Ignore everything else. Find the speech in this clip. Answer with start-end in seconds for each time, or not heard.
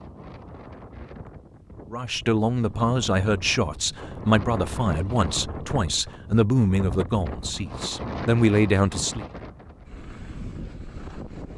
1.9-9.2.